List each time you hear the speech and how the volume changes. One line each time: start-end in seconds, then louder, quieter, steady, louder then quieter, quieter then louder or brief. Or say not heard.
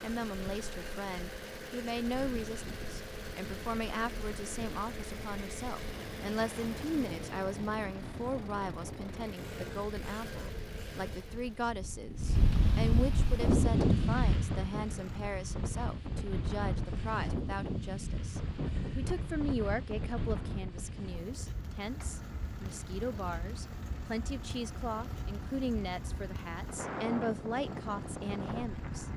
0.0-29.1 steady.